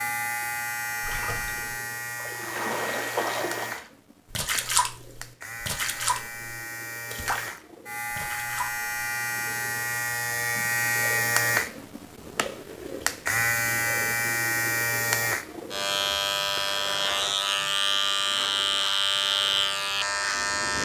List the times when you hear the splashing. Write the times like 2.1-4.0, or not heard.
1.0-8.8.